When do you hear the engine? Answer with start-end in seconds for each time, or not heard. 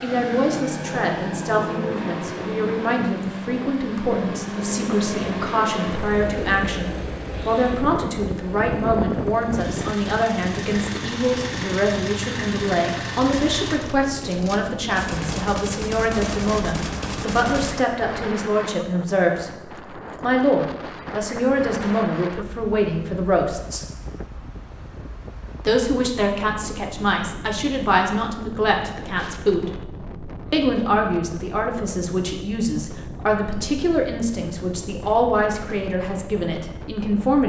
0.0-13.8.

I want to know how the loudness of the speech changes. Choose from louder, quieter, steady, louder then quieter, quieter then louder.
steady.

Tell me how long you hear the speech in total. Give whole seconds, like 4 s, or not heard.
34 s.